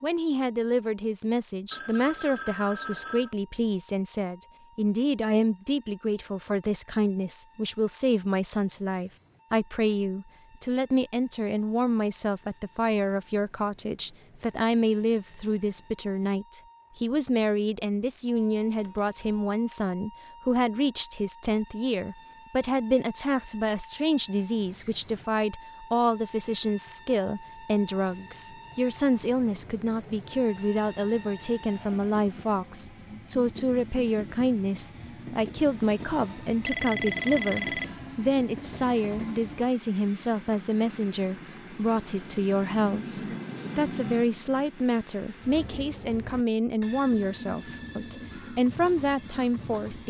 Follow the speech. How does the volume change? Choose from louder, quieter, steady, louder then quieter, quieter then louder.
steady.